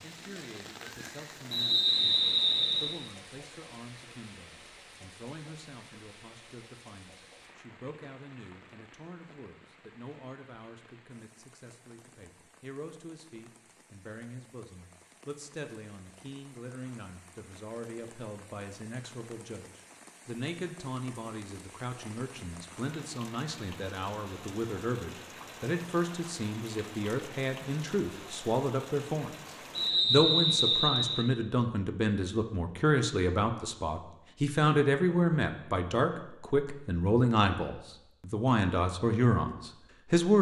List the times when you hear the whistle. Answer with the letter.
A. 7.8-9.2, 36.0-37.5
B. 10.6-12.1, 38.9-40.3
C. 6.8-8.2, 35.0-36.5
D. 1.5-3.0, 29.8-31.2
D.